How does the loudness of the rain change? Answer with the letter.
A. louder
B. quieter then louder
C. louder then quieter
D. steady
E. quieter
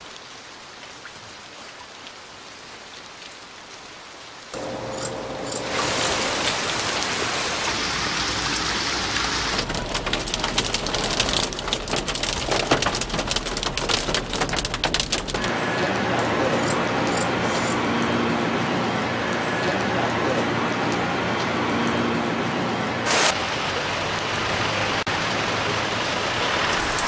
A.